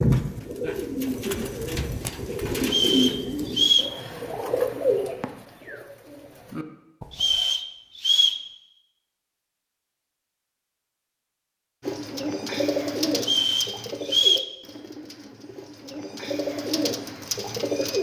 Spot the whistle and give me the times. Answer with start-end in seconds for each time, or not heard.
2.6-3.9, 7.1-8.4, 13.2-14.5.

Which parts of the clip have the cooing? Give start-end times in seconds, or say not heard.
0.0-7.5, 11.8-17.9.